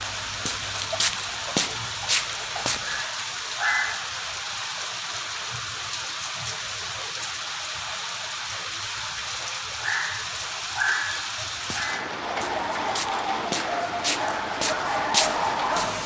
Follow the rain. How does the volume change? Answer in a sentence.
The loudness of the rain stays about the same.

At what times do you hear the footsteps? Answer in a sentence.
The footsteps can be heard from 0.0 to 3.0 s and from 11.5 to 16.0 s.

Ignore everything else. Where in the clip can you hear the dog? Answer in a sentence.
The dog can be heard from 2.9 to 4.2 s and from 9.8 to 16.0 s.